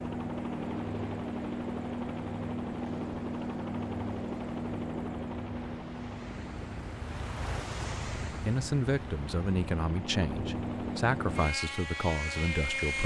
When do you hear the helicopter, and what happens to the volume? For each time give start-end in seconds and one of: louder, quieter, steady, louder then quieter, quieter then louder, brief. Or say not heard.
0.0-13.0 quieter then louder.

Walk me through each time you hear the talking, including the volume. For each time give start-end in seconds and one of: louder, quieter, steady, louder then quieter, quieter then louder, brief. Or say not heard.
8.3-13.0 quieter then louder.